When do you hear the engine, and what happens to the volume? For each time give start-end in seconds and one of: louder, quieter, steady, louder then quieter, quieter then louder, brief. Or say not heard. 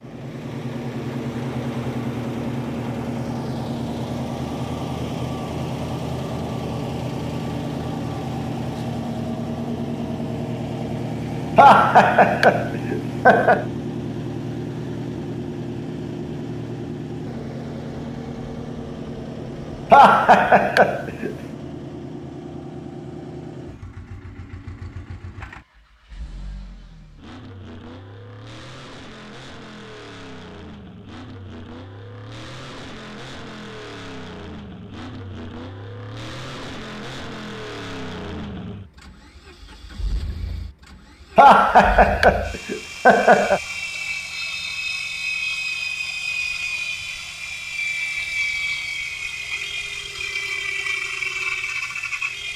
0.0-52.5 quieter then louder.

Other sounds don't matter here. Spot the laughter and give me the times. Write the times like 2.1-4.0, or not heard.
11.6-13.7, 19.9-21.4, 41.4-43.6.